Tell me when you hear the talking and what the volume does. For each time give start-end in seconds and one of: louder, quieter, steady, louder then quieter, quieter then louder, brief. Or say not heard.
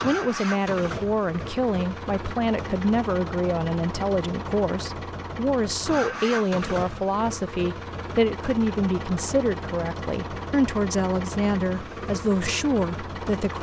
0.0-13.5 steady.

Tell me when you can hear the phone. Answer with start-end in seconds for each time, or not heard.
not heard.